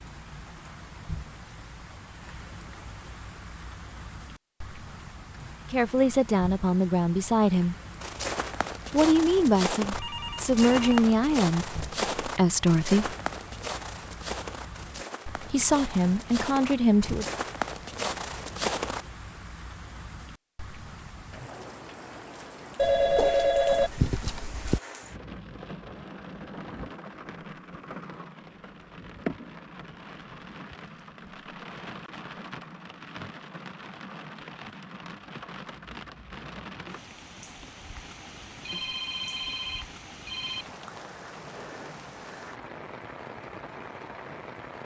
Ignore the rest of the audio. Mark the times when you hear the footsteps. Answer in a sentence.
The footsteps can be heard from 8.0 to 19.1 s.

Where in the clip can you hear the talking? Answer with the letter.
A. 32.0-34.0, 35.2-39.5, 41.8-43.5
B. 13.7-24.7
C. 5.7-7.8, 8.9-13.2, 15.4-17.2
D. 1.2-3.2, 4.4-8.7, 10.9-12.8
C.